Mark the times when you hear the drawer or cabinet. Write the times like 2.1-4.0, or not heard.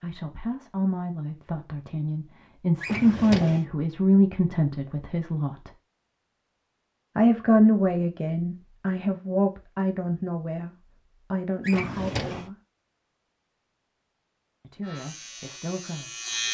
2.8-3.6, 11.6-12.5.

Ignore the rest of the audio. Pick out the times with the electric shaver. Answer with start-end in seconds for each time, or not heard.
14.8-16.5.